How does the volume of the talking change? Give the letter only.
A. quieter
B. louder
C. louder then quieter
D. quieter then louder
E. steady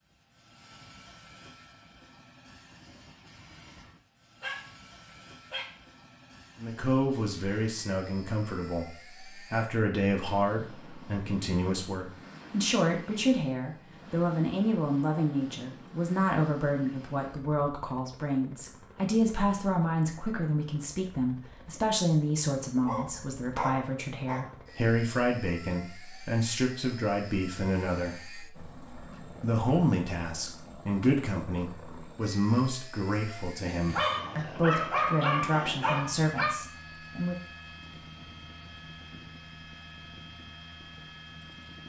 E.